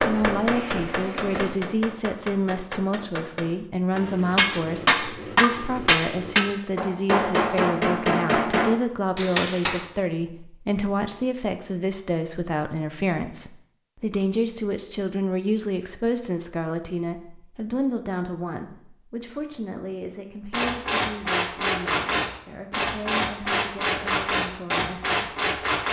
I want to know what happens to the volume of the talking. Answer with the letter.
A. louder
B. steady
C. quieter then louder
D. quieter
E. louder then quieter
D.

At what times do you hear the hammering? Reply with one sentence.
You can hear the hammering from 0.0 to 9.8 s and from 20.5 to 25.8 s.